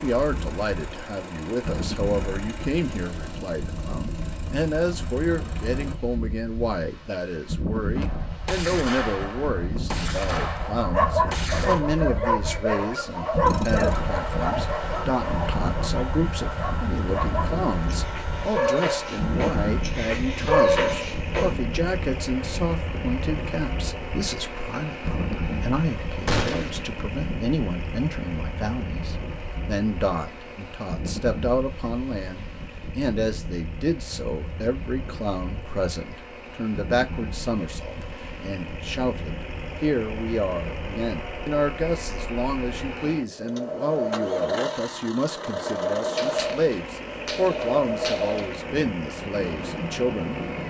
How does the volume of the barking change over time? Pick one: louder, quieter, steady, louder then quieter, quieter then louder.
quieter then louder.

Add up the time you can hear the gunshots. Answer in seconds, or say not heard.
7 s.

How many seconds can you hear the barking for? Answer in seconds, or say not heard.
11 s.